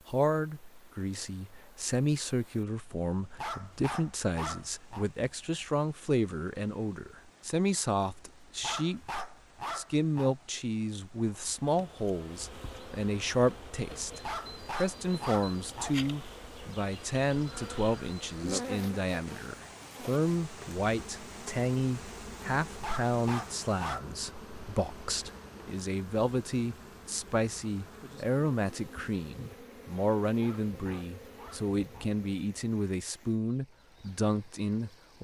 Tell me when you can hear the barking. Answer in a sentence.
You can hear the barking from 3.4 to 5.0 s, from 8.6 to 10.3 s, from 14.2 to 16.1 s, from 22.8 to 24.4 s and from 30.4 to 32.1 s.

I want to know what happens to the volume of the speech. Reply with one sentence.
The volume of the speech stays about the same.